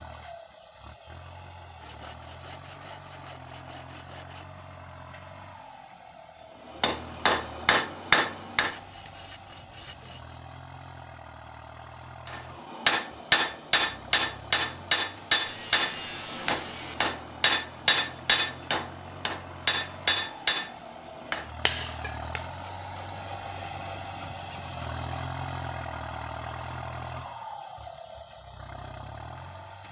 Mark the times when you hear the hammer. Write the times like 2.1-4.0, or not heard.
6.7-8.8, 12.2-22.5.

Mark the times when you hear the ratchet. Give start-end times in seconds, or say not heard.
not heard.